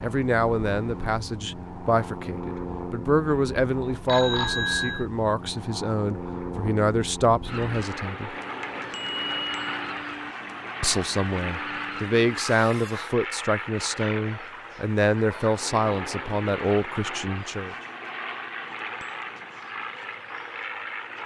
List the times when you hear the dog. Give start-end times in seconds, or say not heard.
not heard.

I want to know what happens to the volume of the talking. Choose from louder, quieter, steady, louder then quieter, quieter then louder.
steady.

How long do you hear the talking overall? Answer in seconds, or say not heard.
15 s.